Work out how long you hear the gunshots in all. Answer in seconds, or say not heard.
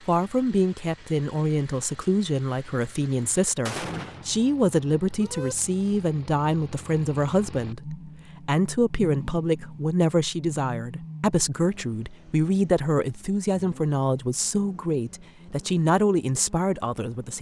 2 s.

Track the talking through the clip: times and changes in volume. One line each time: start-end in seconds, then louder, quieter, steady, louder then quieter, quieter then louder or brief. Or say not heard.
0.1-17.3 steady.